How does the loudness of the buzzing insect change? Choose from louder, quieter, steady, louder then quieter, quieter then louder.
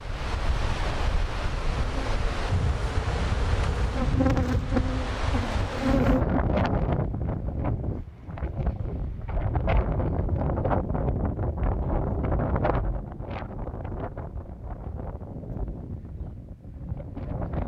louder then quieter.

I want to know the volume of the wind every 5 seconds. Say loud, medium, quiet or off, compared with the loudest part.
loud, loud, loud, medium.